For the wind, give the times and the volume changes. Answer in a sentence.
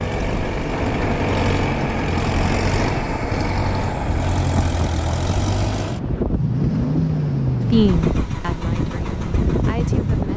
The wind can be heard from 0.0 to 10.3 s, at a steady volume.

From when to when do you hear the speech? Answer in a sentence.
The speech can be heard from 7.7 to 10.3 s.